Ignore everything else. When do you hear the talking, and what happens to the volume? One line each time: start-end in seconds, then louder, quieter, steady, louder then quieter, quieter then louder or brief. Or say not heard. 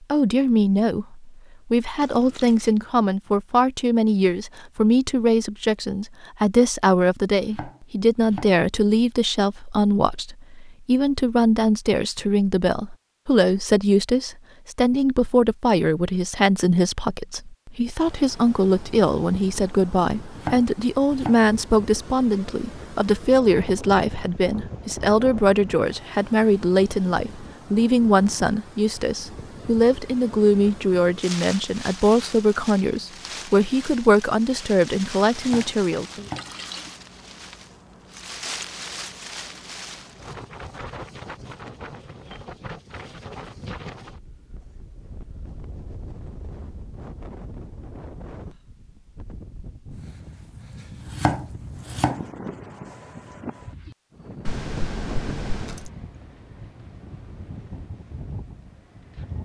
0.1-36.2 steady.